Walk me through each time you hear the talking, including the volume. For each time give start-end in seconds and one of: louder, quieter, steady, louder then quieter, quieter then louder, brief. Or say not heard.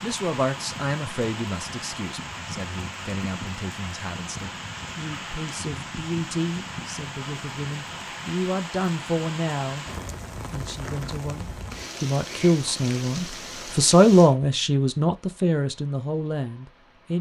0.0-9.8 quieter then louder
10.5-17.1 louder then quieter.